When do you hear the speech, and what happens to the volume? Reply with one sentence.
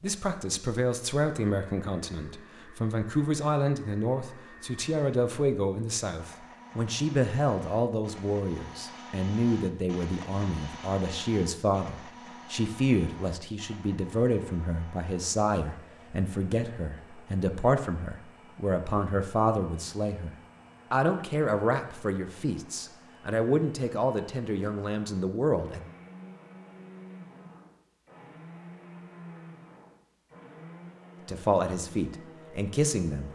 The speech can be heard from 0.0 to 25.9 s, at a steady volume; and briefly from 31.2 to 33.3 s.